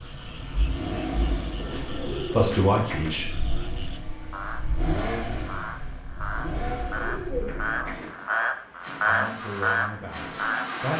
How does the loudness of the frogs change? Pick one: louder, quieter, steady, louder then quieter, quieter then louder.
louder.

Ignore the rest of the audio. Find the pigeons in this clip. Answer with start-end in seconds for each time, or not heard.
1.6-3.3, 6.5-8.2.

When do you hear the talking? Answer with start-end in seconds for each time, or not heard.
1.7-3.2, 9.0-10.9.